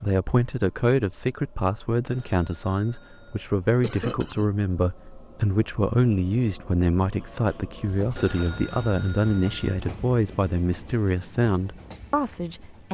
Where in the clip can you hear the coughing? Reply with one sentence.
The coughing can be heard from 3.8 to 4.5 s.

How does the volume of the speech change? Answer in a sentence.
The loudness of the speech stays about the same.